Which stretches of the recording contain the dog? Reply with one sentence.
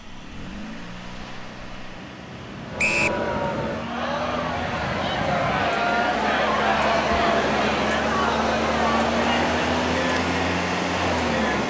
You can't hear the dog here.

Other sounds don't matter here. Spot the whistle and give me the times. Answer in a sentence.
You can hear the whistle from 2.8 to 3.2 s.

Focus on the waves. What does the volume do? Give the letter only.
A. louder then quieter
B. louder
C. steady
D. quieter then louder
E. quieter
B.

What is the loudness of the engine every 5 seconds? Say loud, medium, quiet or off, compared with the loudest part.
medium, loud, loud.